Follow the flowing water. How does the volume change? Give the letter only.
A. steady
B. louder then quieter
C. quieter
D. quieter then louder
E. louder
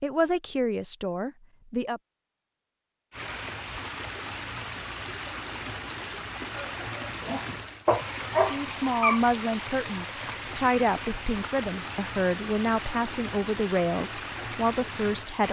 A.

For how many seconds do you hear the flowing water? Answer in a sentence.
The flowing water can be heard for 12 seconds in total.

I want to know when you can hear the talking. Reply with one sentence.
You can hear the talking from 0.0 to 2.0 s and from 8.4 to 15.4 s.